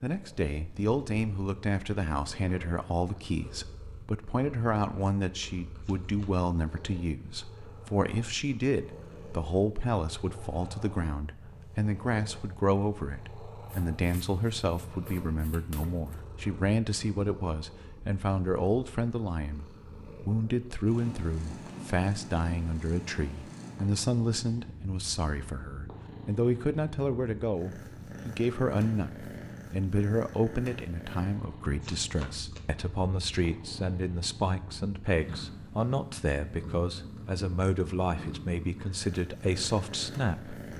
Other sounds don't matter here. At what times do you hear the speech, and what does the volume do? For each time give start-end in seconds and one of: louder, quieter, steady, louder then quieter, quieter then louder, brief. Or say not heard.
0.0-40.7 steady.